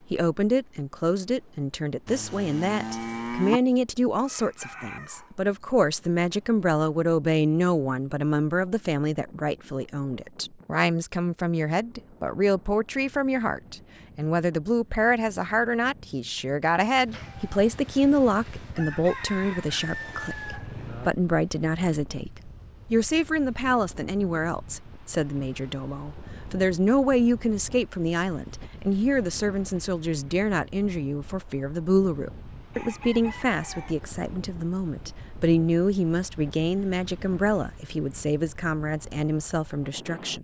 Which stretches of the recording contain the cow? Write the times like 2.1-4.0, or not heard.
2.0-3.6.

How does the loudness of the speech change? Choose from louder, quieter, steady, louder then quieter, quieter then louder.
steady.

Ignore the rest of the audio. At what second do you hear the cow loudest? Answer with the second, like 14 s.
3 s.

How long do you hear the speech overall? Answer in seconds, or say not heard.
40 s.